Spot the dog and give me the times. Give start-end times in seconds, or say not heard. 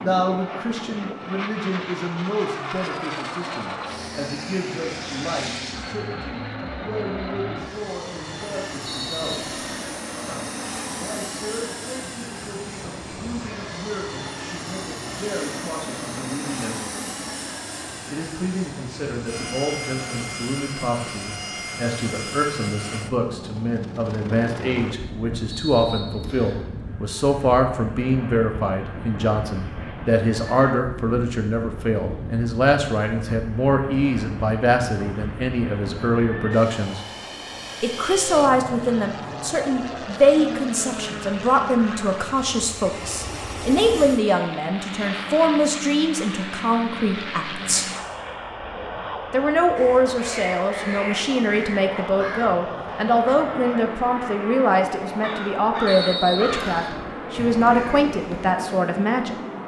not heard.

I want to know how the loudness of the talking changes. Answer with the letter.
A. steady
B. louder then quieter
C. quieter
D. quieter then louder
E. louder
E.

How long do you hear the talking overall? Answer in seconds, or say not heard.
55 s.